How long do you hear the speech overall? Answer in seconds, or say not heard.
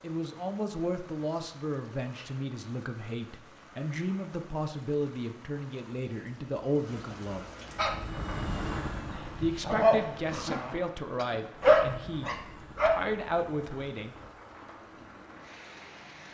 12 s.